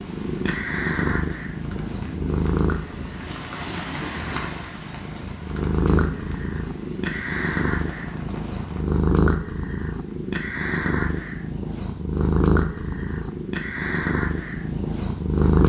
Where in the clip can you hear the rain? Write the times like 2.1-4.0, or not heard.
0.0-8.8.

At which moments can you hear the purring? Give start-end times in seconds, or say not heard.
0.0-15.6.